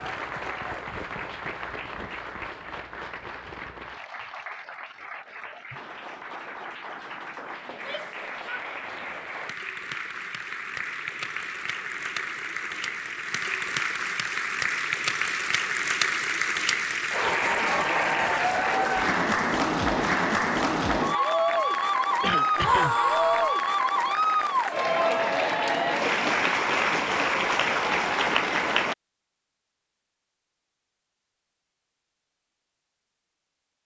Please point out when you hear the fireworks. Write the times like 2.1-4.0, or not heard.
not heard.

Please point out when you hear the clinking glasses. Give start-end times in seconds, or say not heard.
not heard.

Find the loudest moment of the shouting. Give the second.
23 s.